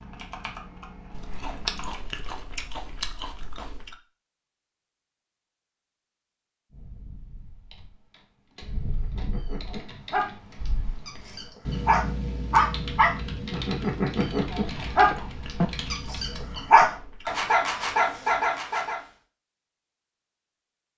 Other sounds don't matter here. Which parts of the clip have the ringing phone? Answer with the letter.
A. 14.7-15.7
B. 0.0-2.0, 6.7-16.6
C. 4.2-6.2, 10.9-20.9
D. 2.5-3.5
A.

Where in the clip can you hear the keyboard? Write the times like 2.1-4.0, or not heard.
0.0-2.0, 6.7-16.6.